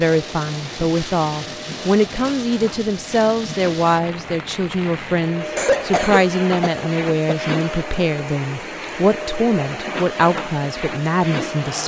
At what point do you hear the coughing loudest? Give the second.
6 s.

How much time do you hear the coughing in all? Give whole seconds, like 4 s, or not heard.
2 s.